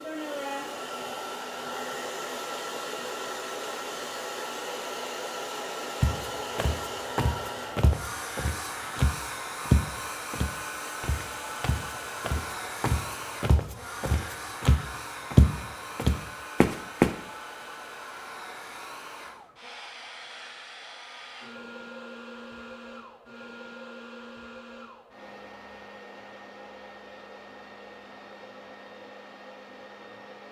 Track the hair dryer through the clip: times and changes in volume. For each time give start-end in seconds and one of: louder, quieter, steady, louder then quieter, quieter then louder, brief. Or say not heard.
0.0-30.4 quieter.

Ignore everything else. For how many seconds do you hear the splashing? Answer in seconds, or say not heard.
not heard.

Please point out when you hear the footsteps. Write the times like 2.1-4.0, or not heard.
6.0-17.1.